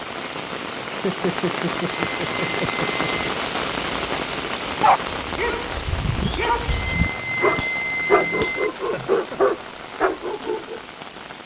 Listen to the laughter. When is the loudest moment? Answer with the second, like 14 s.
1 s.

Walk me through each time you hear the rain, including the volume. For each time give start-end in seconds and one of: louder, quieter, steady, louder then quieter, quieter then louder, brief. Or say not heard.
0.0-11.4 quieter.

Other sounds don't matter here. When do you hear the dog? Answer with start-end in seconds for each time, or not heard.
4.8-10.8.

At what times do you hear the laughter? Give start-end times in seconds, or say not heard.
0.8-3.5, 8.8-9.4.